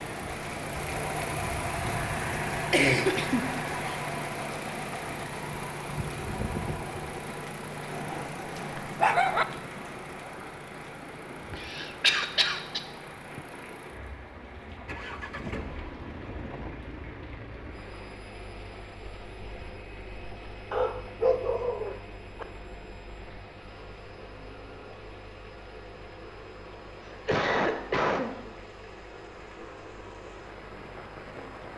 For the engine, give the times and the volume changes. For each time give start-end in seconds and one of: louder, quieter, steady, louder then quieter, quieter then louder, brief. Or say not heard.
0.0-31.7 quieter.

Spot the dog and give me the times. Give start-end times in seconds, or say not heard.
8.0-9.4, 20.7-22.4.